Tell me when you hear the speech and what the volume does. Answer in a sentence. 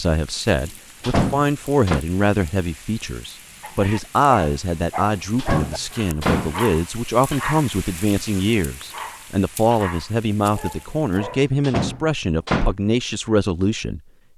You can hear the speech from 0.0 to 14.0 s, at a steady volume.